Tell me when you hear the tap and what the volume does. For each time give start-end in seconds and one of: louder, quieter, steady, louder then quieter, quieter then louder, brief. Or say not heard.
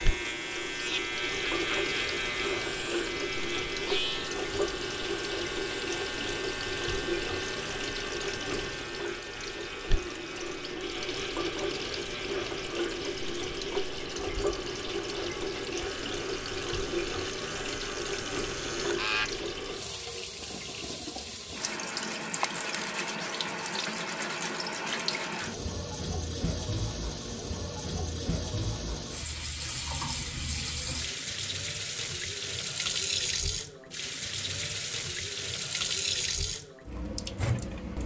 0.0-38.0 steady.